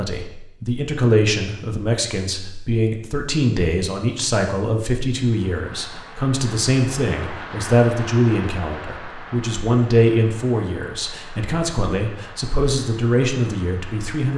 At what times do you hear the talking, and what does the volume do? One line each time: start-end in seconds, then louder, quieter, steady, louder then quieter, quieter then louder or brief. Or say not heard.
0.0-14.3 steady.